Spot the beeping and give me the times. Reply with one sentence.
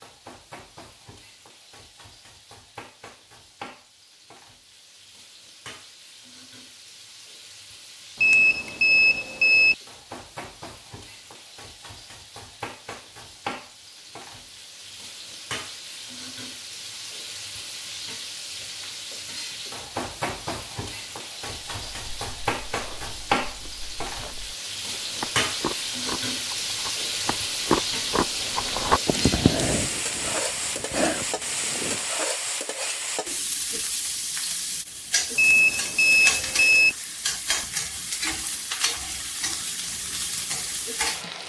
You can hear the beeping from 8.2 to 9.8 s and from 35.4 to 37.0 s.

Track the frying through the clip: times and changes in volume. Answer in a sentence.
The frying can be heard from 0.0 to 41.4 s, getting louder.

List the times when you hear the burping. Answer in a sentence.
You can't hear the burping here.